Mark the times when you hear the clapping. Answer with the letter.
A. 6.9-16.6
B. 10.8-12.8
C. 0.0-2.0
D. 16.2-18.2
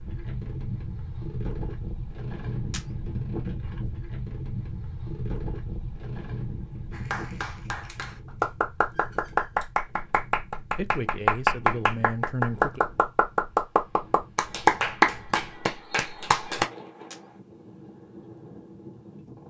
A.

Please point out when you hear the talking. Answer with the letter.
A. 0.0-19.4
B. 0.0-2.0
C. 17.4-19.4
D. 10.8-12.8
D.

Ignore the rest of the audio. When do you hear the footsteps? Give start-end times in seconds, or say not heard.
not heard.